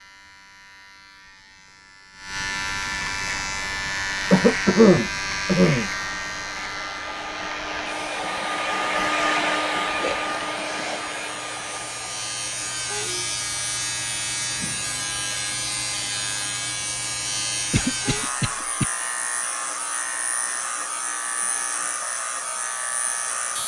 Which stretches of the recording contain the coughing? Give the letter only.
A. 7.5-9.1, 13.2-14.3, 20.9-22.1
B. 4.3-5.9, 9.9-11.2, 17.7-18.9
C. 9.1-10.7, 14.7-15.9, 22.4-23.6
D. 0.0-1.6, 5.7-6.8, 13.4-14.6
B.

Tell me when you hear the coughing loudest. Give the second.
5 s.